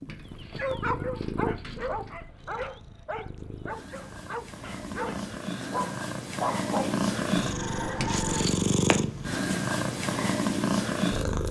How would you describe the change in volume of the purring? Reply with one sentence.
The volume of the purring goes down, then up.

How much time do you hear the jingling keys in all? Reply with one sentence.
You can hear the jingling keys for 3 seconds altogether.